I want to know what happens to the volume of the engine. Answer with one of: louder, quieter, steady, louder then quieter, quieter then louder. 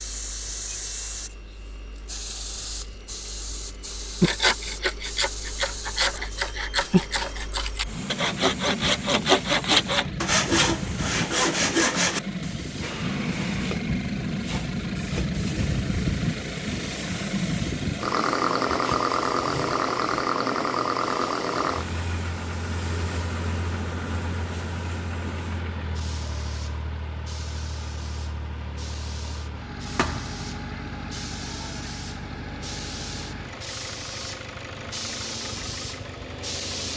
louder then quieter.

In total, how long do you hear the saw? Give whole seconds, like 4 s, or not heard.
8 s.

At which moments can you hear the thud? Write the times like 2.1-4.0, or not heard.
29.9-30.4.